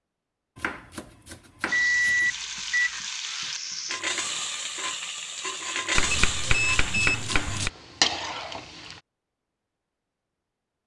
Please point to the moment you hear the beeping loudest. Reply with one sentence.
The volume of the beeping peaks at 2 seconds.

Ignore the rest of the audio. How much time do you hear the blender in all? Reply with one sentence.
You can't hear the blender here.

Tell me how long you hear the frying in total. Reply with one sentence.
The frying can be heard for 7 seconds in total.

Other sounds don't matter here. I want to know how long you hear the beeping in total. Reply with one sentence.
The beeping can be heard for 2 seconds in total.